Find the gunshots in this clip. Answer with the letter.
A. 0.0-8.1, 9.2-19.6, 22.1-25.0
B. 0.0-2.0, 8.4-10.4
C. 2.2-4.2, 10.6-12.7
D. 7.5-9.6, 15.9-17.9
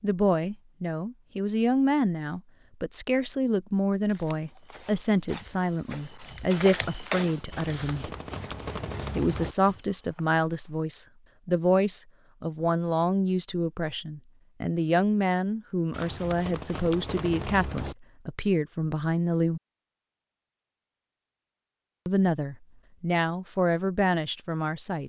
D.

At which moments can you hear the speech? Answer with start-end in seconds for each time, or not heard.
0.0-8.1, 9.2-19.6, 22.1-25.0.